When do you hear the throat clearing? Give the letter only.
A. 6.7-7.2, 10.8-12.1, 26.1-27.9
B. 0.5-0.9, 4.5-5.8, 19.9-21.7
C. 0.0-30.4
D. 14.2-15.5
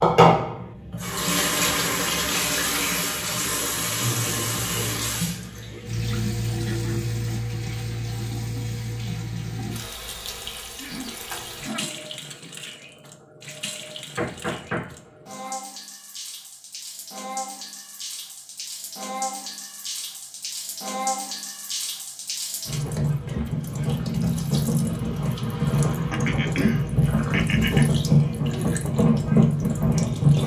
A.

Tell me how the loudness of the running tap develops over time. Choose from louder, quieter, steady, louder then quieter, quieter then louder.
quieter then louder.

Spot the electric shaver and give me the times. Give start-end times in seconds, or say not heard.
not heard.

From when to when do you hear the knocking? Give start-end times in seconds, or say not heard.
14.2-15.5.